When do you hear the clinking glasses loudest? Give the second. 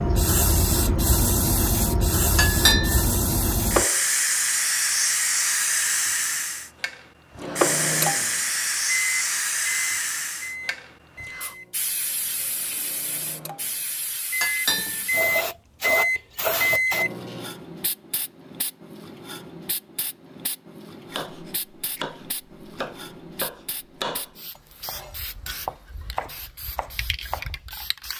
3 s.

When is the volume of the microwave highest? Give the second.
16 s.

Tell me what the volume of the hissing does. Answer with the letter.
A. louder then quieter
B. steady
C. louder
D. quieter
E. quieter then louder
D.